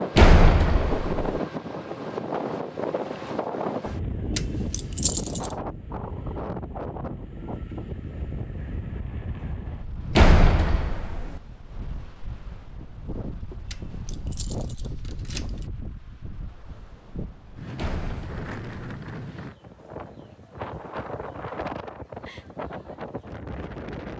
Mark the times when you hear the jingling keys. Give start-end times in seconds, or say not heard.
4.3-5.5, 13.7-15.7.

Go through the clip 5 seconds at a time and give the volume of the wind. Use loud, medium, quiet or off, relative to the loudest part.
loud, medium, medium, medium, medium.